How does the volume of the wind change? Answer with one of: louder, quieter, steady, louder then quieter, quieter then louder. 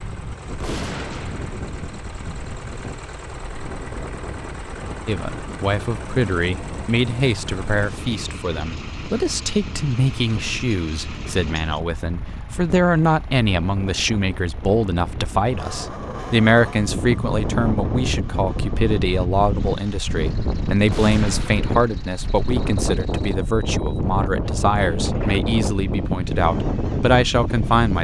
louder.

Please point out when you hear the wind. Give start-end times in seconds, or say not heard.
0.0-27.9.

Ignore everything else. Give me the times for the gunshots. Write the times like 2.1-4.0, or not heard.
0.6-1.8, 20.9-22.1.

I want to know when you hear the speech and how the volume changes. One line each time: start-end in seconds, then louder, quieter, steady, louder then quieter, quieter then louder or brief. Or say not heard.
5.0-27.9 steady.